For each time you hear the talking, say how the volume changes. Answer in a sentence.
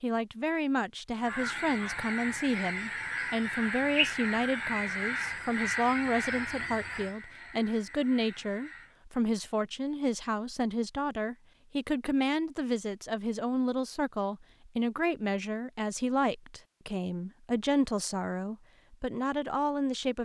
The talking can be heard from 0.0 to 20.2 s, at a steady volume.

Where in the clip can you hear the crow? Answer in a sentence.
The crow can be heard from 1.1 to 8.9 s.